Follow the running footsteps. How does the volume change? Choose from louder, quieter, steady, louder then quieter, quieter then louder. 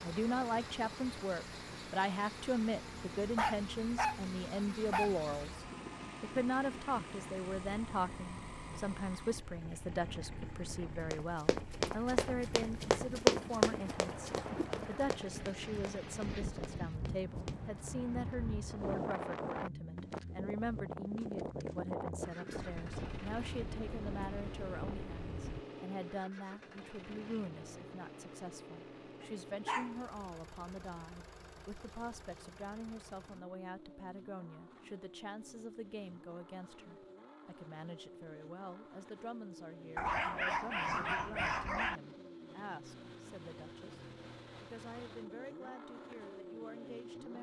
louder then quieter.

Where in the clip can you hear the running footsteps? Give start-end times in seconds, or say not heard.
11.1-18.4.